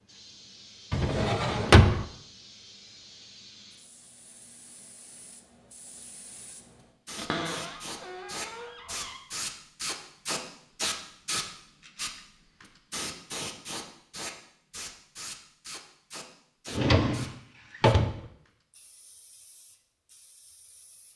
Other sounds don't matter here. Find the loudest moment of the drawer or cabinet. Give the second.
2 s.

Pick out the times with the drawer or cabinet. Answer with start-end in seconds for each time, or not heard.
0.9-2.0, 7.2-9.2, 16.6-18.2.